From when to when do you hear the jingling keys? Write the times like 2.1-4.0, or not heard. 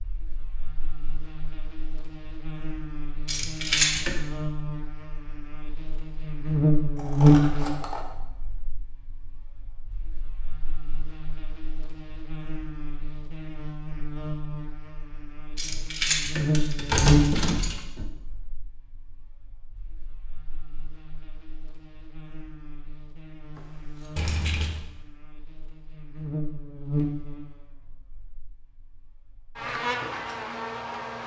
3.2-4.2, 15.6-18.1, 24.1-24.8.